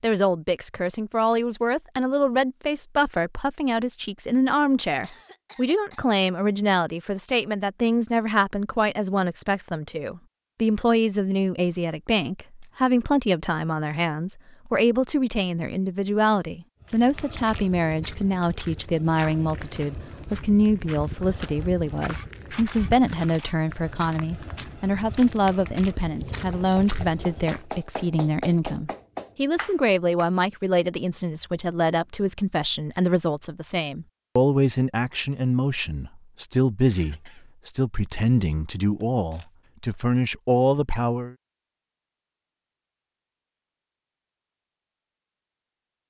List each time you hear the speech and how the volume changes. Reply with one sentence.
You can hear the speech from 0.0 to 41.4 s, at a steady volume.